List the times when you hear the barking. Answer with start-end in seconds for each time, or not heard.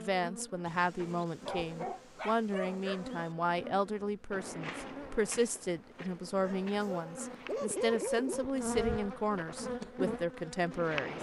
0.7-3.4, 6.4-8.5.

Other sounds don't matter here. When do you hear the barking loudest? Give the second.
8 s.